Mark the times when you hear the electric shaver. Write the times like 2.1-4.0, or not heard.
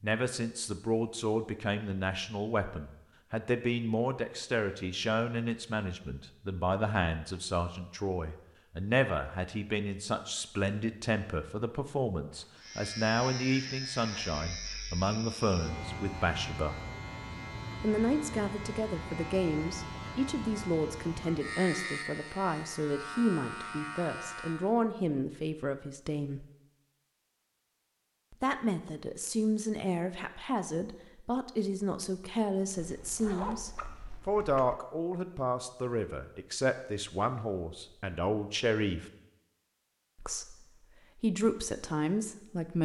12.6-24.8.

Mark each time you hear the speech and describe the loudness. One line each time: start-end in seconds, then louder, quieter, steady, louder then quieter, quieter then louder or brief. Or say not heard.
0.0-16.8 steady
17.8-26.4 steady
28.3-39.0 steady
40.1-42.8 brief.